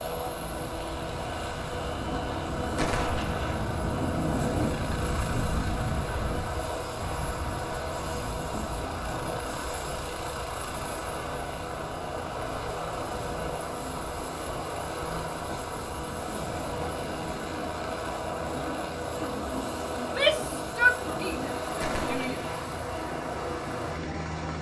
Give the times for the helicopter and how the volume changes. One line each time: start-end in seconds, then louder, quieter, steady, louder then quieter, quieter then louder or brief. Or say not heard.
0.0-24.5 steady.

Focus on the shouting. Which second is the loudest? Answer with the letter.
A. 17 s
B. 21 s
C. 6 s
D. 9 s
B.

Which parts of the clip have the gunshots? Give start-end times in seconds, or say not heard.
2.8-3.5, 21.8-22.6.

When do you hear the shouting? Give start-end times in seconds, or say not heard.
19.9-22.4.